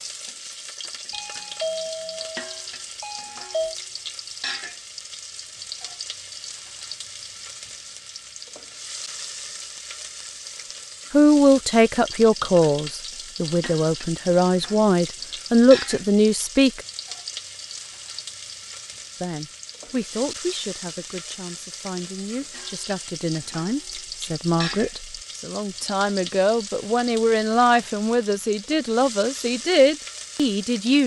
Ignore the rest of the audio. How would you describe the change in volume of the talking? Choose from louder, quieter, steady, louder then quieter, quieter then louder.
quieter then louder.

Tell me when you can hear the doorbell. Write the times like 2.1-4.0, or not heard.
1.1-3.8.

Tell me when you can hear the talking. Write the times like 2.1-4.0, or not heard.
11.1-16.8, 19.2-31.0.